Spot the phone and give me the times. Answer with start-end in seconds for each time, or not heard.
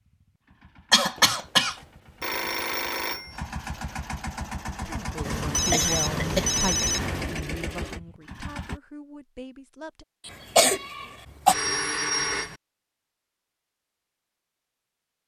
1.1-3.4, 5.2-7.4, 11.4-12.6.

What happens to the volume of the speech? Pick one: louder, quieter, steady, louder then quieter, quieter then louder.
quieter.